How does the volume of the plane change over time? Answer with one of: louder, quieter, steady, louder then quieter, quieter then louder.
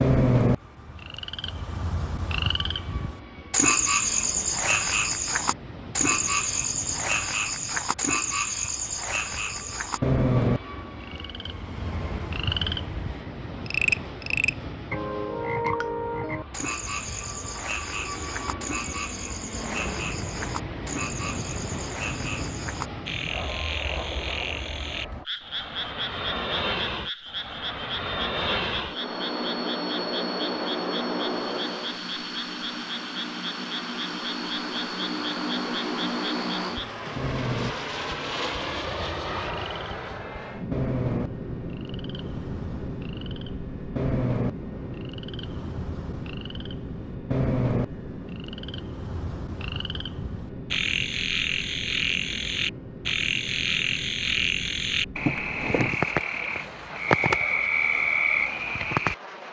louder then quieter.